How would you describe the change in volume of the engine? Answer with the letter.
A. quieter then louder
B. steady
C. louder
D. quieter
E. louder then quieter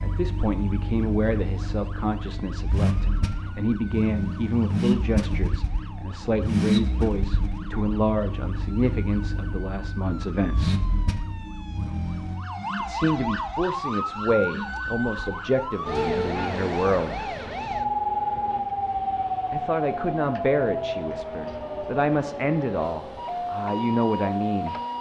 D.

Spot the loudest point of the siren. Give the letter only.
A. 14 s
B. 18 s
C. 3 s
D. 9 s
B.